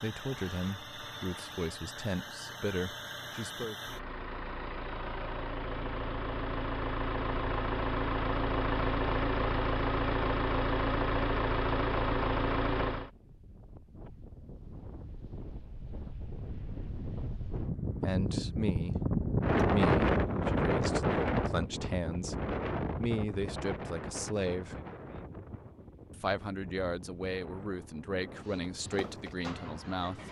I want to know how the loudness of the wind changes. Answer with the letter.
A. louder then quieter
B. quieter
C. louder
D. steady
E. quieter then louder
A.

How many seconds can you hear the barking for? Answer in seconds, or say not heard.
not heard.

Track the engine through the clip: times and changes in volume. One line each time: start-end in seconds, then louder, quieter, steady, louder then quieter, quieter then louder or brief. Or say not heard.
0.0-13.1 louder
28.4-30.2 brief.